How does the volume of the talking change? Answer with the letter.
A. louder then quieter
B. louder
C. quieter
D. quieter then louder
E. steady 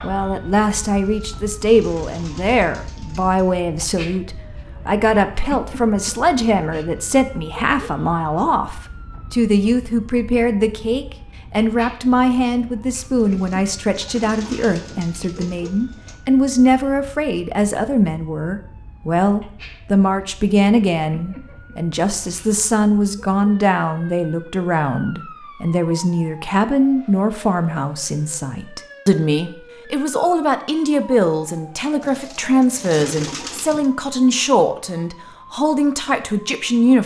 E.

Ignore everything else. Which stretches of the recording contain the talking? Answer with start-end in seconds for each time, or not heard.
0.0-37.0.